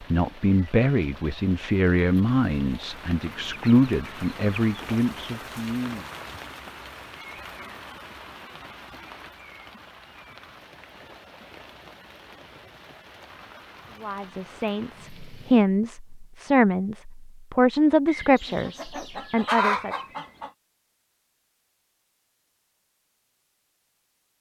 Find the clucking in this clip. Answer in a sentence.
The clucking can be heard from 3.1 to 5.0 s and from 18.1 to 20.5 s.